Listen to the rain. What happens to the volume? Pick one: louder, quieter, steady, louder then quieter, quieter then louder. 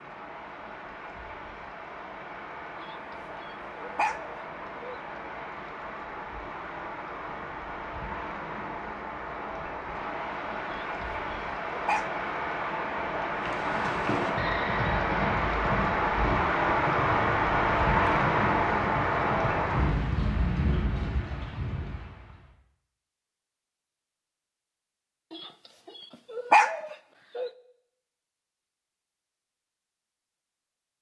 louder.